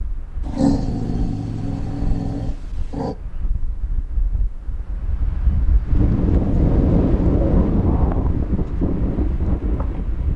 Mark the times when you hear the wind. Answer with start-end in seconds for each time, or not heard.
0.0-10.3.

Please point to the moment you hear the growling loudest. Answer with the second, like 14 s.
1 s.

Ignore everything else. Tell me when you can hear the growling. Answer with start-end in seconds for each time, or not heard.
0.5-3.1, 6.2-8.3.